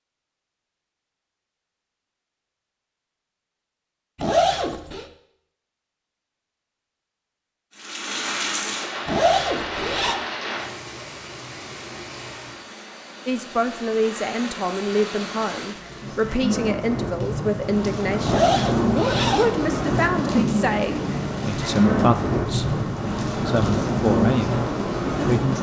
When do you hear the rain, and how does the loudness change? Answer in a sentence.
The rain can be heard from 7.8 to 25.5 s, getting quieter then louder.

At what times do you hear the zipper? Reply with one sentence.
You can hear the zipper from 4.2 to 5.0 s, from 9.1 to 10.2 s and from 18.2 to 19.5 s.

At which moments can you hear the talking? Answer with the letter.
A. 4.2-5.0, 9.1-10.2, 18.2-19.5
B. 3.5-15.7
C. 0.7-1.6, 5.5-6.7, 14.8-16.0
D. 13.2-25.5
D.